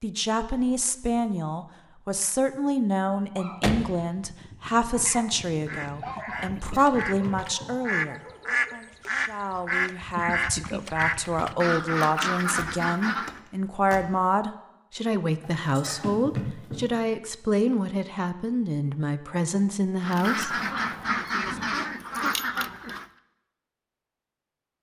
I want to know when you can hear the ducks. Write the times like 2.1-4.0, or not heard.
5.7-13.4, 20.0-23.1.